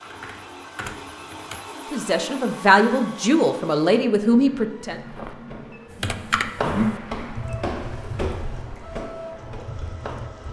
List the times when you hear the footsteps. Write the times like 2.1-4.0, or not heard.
5.0-10.3.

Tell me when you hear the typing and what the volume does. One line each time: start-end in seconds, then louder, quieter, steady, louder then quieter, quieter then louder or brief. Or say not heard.
0.0-1.6 brief
5.9-10.4 quieter.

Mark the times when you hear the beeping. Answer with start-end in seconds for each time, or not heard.
not heard.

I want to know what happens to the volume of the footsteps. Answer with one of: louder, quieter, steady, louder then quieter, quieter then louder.
louder then quieter.